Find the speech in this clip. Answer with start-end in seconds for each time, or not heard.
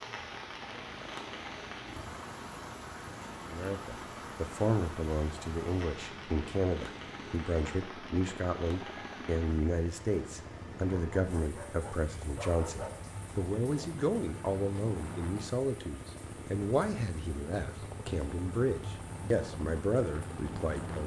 3.5-21.0.